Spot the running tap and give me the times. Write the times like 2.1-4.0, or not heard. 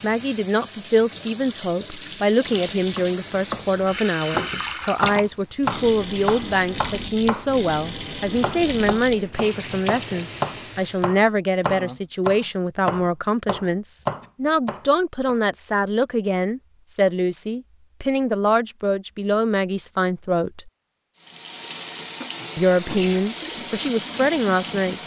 0.0-11.2, 21.1-25.0.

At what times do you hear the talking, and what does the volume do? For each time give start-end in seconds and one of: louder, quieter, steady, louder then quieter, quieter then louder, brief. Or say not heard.
0.0-20.7 steady
22.6-25.0 brief.